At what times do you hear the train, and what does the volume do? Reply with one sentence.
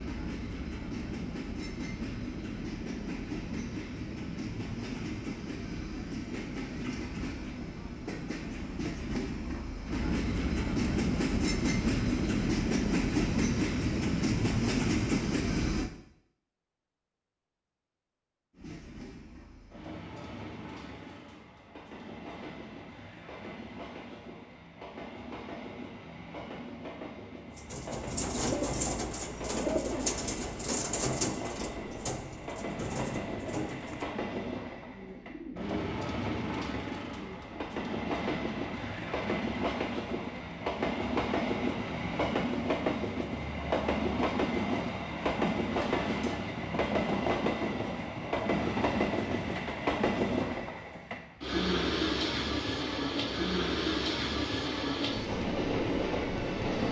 The train can be heard from 0.0 to 15.9 s, getting louder; and from 18.5 to 56.8 s, getting louder.